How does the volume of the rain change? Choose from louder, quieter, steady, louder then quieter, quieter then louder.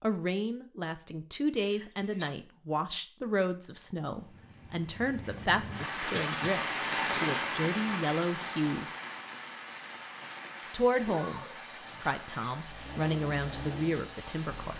louder then quieter.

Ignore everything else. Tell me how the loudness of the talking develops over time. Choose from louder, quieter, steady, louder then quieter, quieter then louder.
steady.